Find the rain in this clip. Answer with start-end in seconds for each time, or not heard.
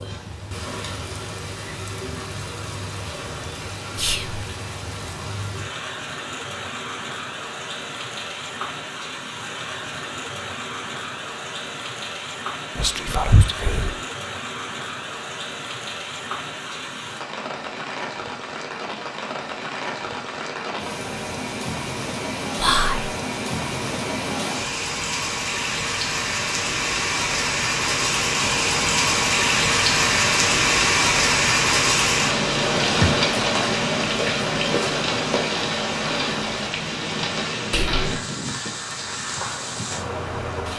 0.0-40.7.